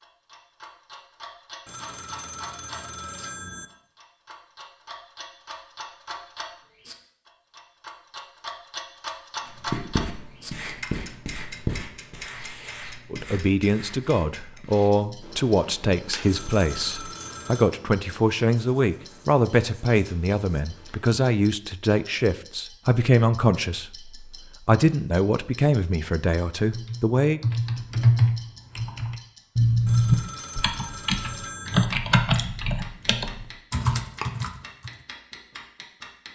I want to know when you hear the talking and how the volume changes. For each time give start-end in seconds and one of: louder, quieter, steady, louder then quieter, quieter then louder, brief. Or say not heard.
13.1-27.4 steady.